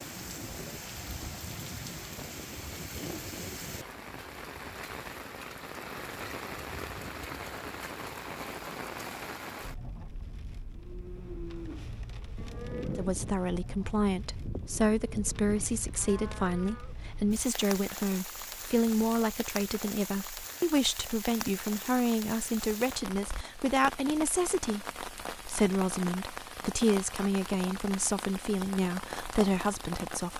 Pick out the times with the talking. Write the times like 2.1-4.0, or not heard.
12.9-30.3.